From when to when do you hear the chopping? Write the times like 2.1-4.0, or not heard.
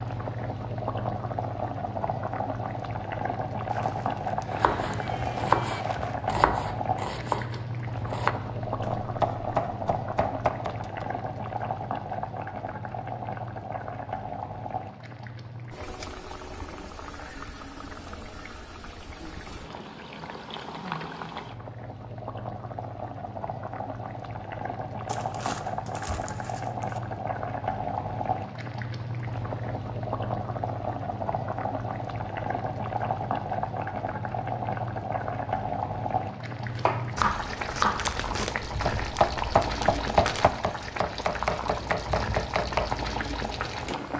4.5-11.1, 36.8-43.1.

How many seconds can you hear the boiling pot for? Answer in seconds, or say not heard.
44 s.